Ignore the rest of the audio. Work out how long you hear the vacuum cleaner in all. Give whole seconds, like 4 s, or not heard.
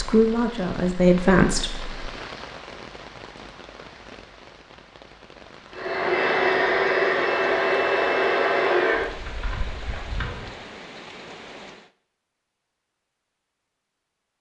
5 s.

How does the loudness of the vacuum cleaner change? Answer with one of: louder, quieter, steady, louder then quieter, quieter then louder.
quieter.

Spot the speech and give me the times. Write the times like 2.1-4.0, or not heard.
0.0-1.9.